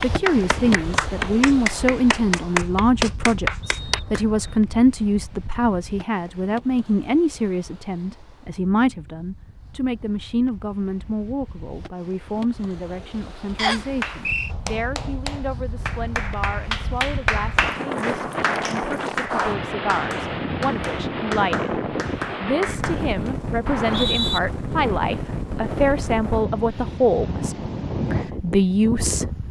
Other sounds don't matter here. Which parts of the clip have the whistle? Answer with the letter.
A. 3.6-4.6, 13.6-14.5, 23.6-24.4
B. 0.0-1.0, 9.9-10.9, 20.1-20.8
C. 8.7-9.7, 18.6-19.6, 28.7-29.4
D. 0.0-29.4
A.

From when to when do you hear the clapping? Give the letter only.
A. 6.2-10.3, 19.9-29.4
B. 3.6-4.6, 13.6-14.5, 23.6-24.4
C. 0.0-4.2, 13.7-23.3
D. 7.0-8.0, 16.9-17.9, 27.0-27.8
C.